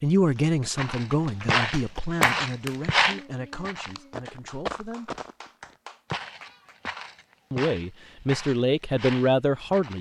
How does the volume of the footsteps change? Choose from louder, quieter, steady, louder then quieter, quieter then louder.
quieter.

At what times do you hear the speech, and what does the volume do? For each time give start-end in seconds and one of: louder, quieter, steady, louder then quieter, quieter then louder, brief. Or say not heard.
0.0-5.2 quieter
7.5-9.9 brief.